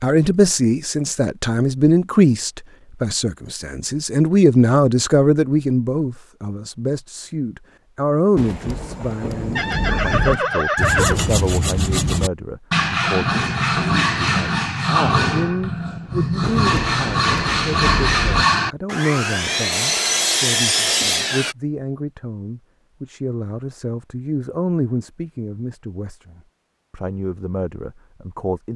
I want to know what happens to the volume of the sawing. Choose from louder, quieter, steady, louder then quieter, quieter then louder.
steady.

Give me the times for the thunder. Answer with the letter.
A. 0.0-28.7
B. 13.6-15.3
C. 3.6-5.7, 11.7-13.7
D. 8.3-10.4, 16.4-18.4
D.